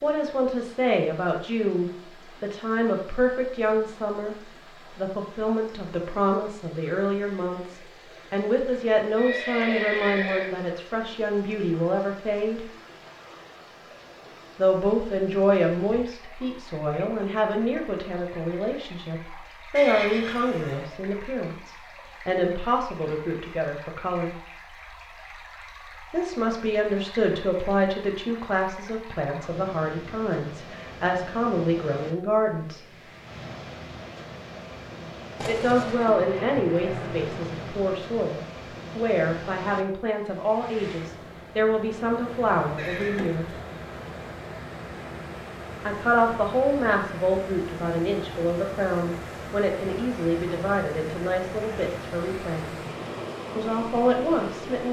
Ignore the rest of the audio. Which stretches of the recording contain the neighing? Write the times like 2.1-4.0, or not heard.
9.2-10.5, 19.8-20.9, 42.8-43.5.